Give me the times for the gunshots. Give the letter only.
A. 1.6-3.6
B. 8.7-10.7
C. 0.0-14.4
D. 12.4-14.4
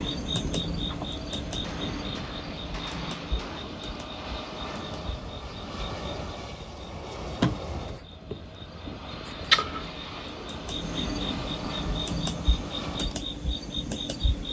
A.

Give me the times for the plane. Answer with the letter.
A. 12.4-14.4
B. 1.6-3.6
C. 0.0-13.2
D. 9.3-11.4
C.